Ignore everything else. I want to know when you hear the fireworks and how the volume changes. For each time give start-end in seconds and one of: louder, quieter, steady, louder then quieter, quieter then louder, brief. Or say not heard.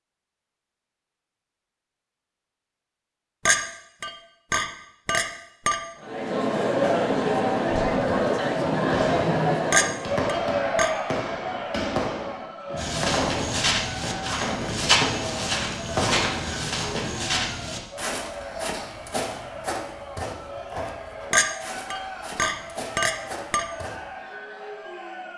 8.8-17.4 steady.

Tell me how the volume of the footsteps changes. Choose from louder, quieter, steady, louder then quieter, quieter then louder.
quieter.